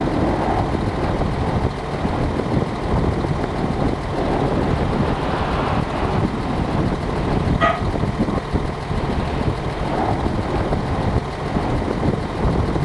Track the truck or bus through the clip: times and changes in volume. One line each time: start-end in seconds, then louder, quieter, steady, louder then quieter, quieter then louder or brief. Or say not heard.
0.0-12.7 steady.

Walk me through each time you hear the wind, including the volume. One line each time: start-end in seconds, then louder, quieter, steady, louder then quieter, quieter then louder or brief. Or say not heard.
0.0-12.7 steady.